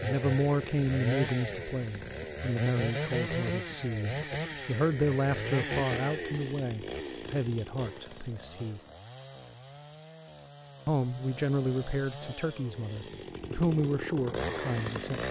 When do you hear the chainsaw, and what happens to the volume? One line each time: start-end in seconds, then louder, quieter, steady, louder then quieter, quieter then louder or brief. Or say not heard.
0.0-15.2 quieter then louder.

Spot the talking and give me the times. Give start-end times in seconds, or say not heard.
0.0-8.8, 10.8-15.2.